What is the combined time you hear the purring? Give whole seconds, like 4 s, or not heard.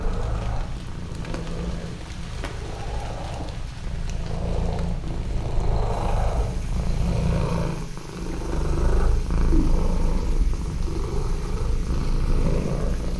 13 s.